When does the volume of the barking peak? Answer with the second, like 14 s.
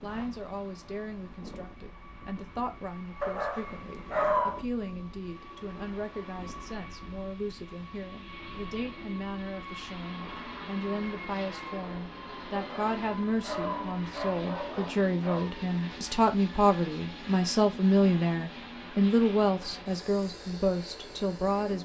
4 s.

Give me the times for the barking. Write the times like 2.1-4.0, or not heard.
3.2-4.7, 12.5-15.5.